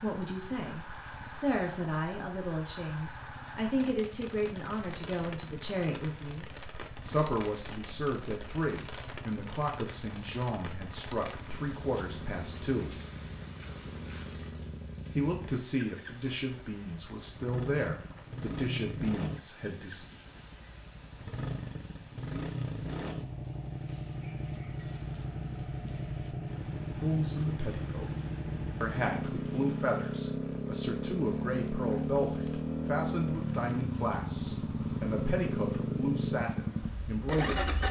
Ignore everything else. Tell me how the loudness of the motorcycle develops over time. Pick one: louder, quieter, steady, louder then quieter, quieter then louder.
louder.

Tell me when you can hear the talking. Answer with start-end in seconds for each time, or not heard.
0.0-12.9, 15.2-20.1, 27.0-28.1, 28.8-37.8.